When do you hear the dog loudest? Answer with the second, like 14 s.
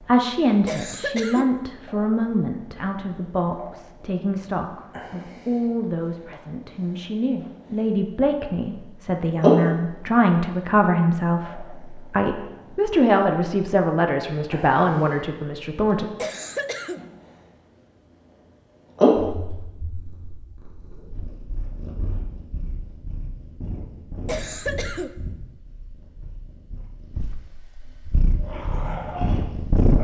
29 s.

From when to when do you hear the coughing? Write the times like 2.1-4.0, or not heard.
0.7-1.5, 16.1-17.0, 24.2-25.1.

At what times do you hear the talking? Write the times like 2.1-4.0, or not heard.
0.1-16.1.